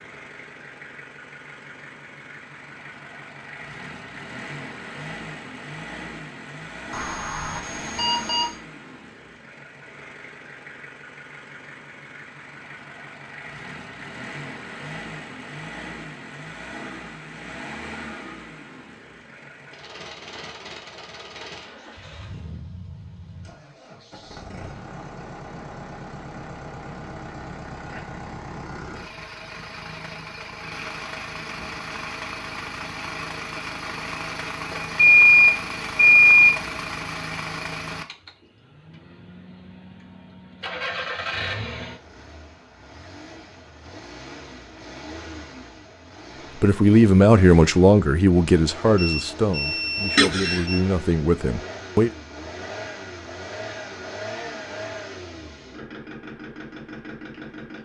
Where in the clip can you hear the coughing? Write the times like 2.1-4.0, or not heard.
50.1-50.6.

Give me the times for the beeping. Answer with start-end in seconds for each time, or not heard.
6.9-8.5, 34.7-36.6, 49.0-50.9.